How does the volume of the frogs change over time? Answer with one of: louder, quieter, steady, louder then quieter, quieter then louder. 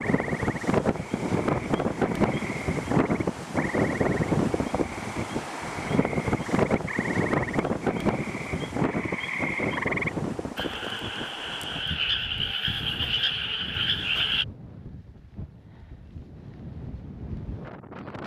louder.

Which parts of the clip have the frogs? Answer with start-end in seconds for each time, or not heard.
0.0-14.4.